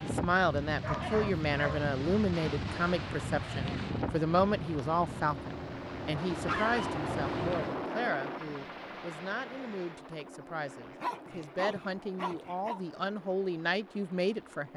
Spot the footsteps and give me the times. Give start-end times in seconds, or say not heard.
not heard.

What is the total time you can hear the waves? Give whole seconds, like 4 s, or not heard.
8 s.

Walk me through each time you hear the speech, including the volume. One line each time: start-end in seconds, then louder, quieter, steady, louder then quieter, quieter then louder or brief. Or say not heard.
0.0-14.7 quieter then louder.